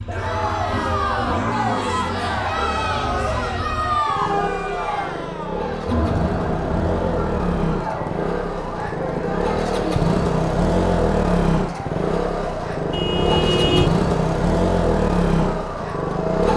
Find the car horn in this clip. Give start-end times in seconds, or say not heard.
3.0-3.7, 12.9-13.9.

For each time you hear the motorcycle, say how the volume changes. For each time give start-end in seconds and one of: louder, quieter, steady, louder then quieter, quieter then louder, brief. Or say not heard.
0.0-16.5 louder.